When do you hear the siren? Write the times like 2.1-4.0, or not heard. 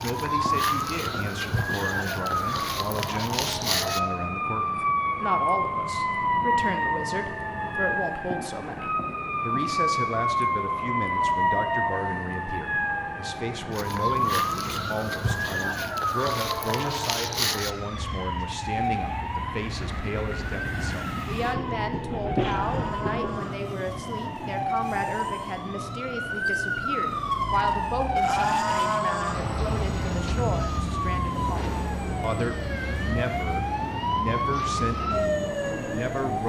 0.0-36.4.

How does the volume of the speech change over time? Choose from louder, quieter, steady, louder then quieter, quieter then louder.
steady.